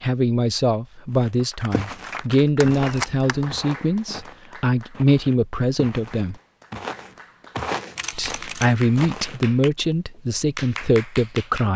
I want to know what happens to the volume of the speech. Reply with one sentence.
The volume of the speech stays about the same.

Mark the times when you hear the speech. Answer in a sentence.
The speech can be heard from 0.0 to 6.3 s and from 8.2 to 11.7 s.